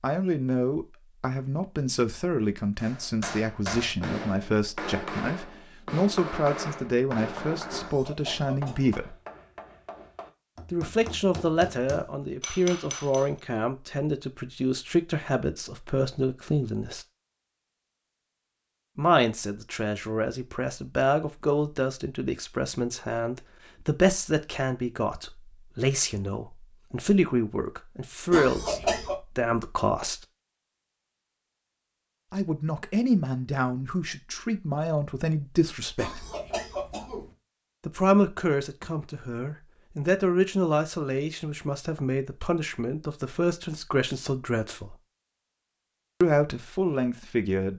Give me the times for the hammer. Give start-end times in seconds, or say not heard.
2.8-13.3.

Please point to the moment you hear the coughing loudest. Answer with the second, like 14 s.
29 s.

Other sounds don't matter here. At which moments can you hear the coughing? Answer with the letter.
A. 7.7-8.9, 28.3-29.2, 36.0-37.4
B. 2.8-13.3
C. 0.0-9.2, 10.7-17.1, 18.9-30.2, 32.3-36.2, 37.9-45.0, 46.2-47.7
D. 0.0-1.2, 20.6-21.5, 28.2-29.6
A.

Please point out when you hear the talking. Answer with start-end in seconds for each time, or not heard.
0.0-9.2, 10.7-17.1, 18.9-30.2, 32.3-36.2, 37.9-45.0, 46.2-47.7.